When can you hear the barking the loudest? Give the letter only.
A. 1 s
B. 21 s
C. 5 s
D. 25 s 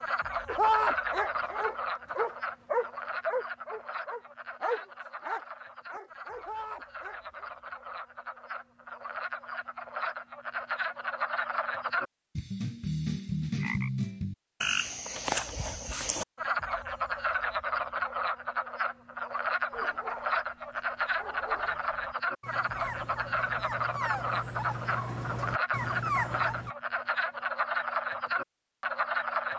A.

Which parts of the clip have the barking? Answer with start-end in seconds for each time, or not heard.
0.5-7.5, 19.7-26.8.